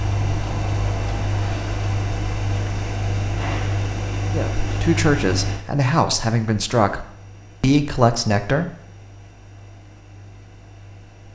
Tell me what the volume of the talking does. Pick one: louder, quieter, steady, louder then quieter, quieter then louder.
quieter then louder.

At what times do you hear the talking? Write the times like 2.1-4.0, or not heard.
4.3-8.7.